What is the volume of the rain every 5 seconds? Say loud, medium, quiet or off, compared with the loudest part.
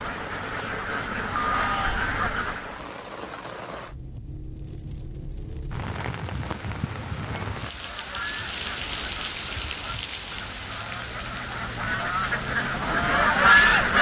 medium, loud, loud.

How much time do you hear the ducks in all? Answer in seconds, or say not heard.
9 s.